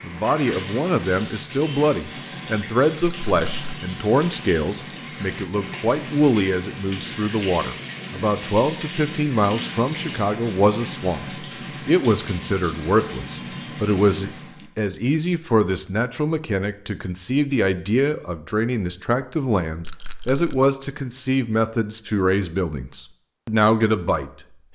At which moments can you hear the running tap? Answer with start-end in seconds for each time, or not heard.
0.0-14.7.